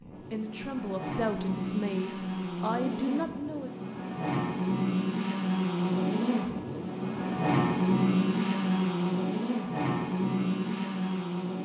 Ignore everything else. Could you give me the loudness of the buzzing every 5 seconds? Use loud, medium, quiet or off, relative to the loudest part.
medium, loud, loud.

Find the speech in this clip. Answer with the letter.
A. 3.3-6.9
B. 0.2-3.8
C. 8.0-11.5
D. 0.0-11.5
B.